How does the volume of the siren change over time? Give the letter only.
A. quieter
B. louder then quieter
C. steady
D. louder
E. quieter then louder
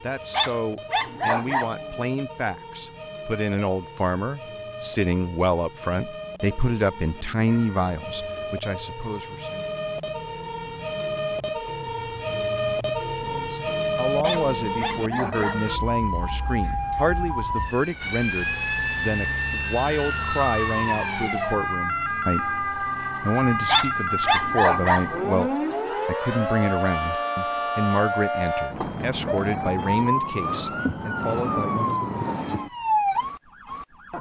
D.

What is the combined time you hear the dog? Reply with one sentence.
You can hear the dog for 5 seconds altogether.